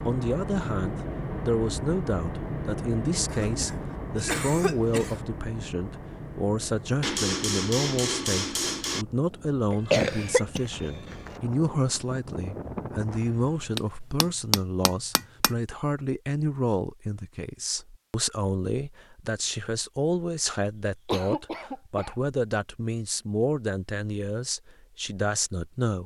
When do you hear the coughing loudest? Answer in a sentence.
The volume of the coughing peaks at 10 seconds.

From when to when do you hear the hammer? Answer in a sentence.
You can hear the hammer from 7.0 to 9.1 s and from 13.8 to 15.5 s.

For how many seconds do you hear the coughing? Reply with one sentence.
The coughing can be heard for 5 seconds in total.